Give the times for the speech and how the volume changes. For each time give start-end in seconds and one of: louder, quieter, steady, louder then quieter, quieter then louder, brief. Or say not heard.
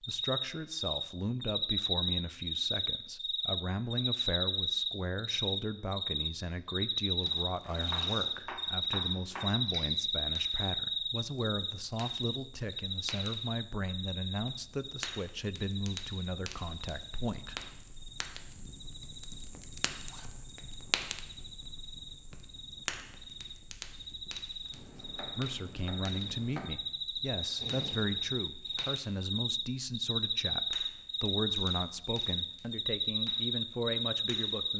0.1-17.6 steady
25.4-34.7 steady.